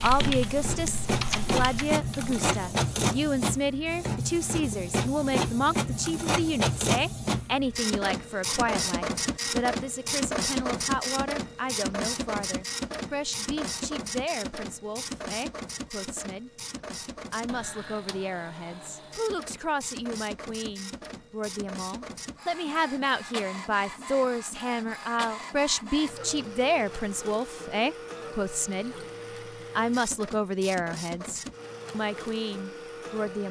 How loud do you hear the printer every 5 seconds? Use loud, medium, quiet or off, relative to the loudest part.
loud, loud, loud, medium, medium, medium, medium.